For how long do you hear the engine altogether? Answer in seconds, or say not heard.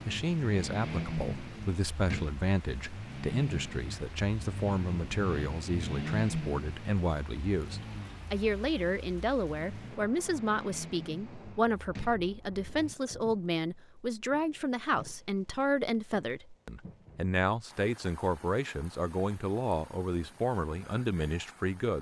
13 s.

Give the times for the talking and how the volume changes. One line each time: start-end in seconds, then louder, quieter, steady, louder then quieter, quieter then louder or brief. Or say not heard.
0.0-21.9 steady.